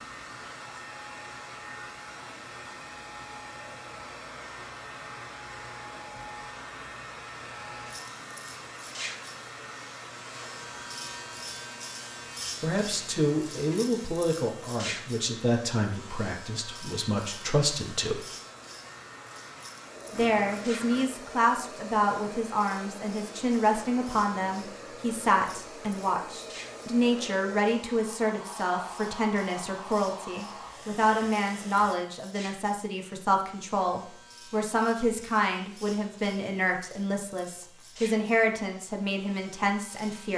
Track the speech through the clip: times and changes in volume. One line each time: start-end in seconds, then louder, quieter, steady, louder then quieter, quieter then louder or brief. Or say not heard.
12.6-18.2 quieter then louder
20.1-40.3 steady.